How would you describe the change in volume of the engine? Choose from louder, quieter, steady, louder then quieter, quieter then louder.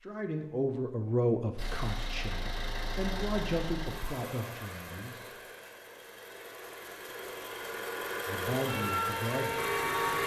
quieter then louder.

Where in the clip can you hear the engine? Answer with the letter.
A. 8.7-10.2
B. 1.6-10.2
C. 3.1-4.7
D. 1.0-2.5
B.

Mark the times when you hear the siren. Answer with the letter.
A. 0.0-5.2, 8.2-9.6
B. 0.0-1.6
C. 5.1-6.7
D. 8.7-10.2
D.